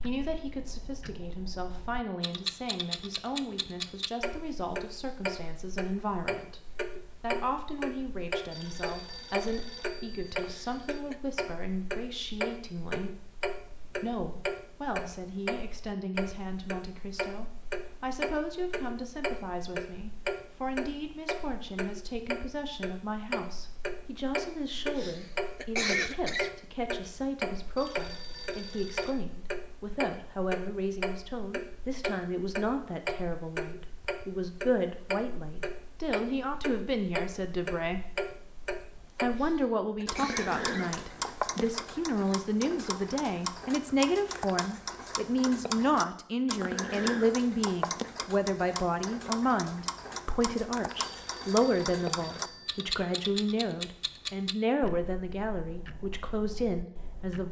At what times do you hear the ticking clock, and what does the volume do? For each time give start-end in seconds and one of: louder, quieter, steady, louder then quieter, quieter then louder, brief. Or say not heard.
0.0-57.4 steady.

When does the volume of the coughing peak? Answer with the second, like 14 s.
26 s.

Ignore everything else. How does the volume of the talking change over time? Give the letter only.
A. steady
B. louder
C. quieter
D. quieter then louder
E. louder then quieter
B.